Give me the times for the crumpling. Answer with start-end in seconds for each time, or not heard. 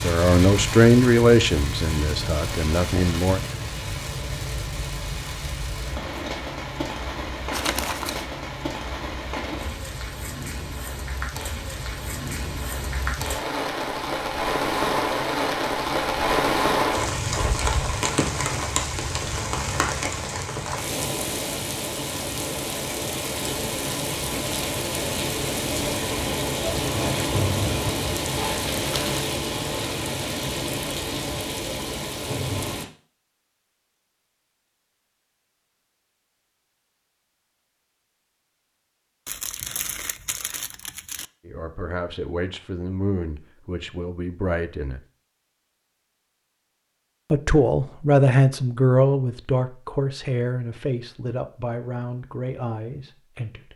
7.5-8.3, 28.8-29.2, 39.2-41.2.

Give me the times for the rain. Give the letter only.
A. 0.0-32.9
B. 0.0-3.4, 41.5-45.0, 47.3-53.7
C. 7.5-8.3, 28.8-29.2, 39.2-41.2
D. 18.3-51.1
A.